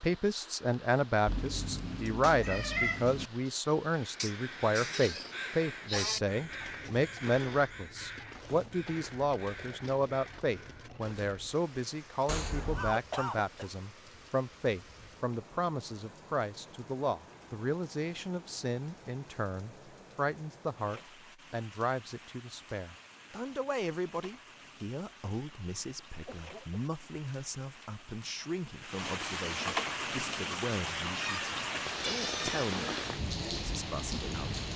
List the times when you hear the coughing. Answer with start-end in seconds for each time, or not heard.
4.2-6.2, 12.7-13.7, 26.2-26.8.